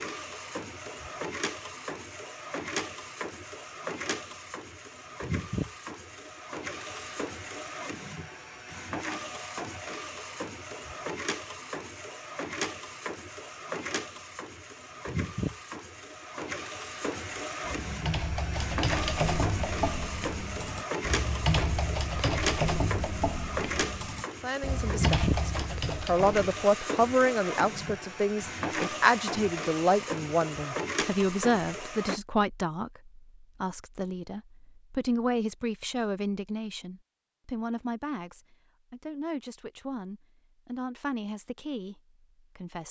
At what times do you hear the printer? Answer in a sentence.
You can hear the printer from 0.0 to 32.2 s.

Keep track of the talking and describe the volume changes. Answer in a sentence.
The loudness of the talking goes down.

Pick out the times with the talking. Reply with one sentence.
You can hear the talking from 24.4 to 42.8 s.